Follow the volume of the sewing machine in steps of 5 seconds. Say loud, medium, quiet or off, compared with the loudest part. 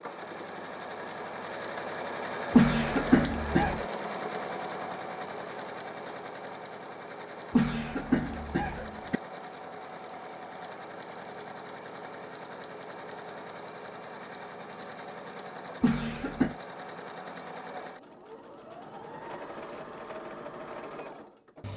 loud, medium, medium, medium, medium.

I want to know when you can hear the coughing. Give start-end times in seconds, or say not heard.
2.5-3.9, 7.5-9.2, 15.8-16.6.